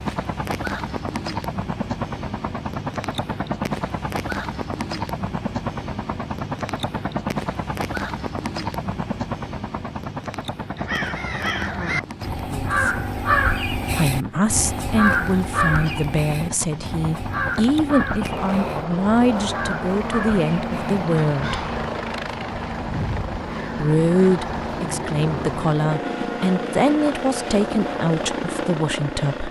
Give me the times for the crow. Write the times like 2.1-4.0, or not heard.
10.8-21.9.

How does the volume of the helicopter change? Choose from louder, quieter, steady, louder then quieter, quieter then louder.
quieter then louder.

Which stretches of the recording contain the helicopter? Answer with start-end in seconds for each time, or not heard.
0.0-29.4.